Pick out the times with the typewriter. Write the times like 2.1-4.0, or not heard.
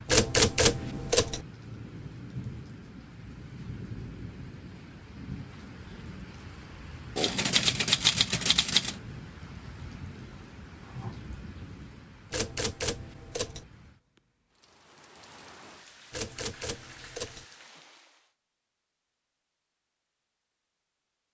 0.1-1.4, 7.2-9.0, 12.3-13.7, 16.1-17.4.